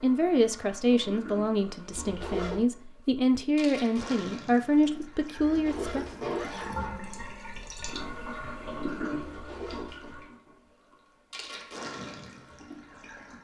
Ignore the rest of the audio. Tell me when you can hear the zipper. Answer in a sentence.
The zipper can be heard from 1.9 to 2.6 s, from 5.3 to 6.9 s and from 9.2 to 10.1 s.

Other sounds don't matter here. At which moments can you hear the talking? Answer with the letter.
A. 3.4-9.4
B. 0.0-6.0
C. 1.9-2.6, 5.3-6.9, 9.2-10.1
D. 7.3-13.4
B.